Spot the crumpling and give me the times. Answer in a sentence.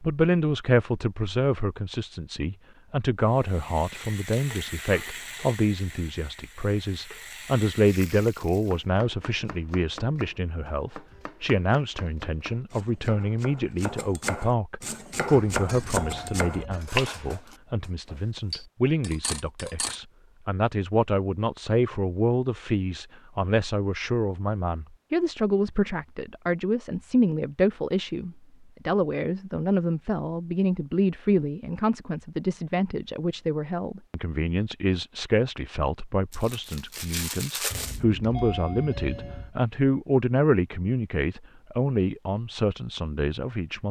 You can hear the crumpling from 36.3 to 38.0 s.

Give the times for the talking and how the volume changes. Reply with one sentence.
The talking can be heard from 0.0 to 43.8 s, at a steady volume.